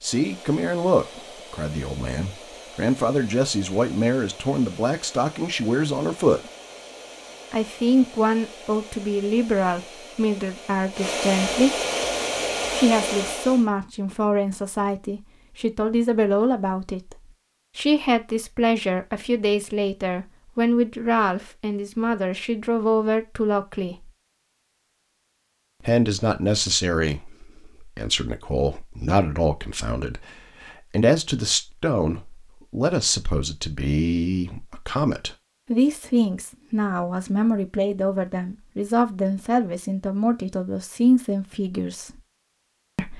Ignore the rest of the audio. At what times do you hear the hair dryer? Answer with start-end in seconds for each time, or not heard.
0.0-13.7.